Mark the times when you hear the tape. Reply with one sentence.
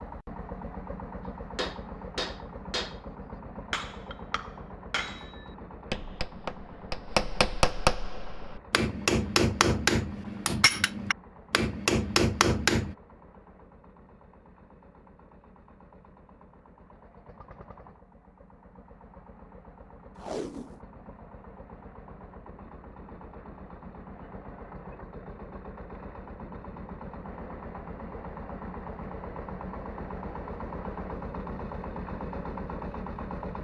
The tape can be heard from 20.1 to 20.8 s.